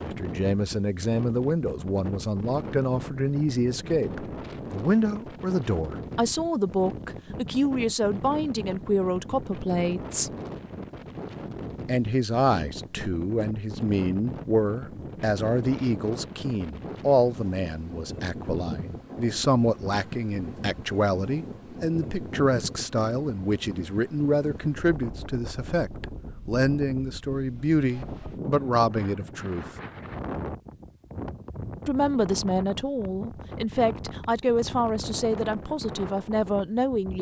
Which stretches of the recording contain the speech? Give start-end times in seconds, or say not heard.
0.0-10.3, 11.8-29.6, 31.9-37.1.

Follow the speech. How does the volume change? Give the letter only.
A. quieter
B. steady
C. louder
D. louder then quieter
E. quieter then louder
B.